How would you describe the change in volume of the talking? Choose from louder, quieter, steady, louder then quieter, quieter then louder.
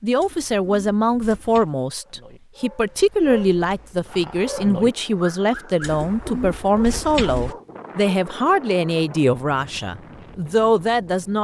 steady.